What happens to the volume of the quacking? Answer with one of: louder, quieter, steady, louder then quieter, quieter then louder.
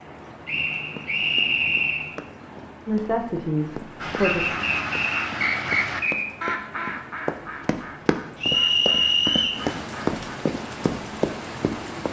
quieter.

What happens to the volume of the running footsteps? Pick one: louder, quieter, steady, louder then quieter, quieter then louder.
louder.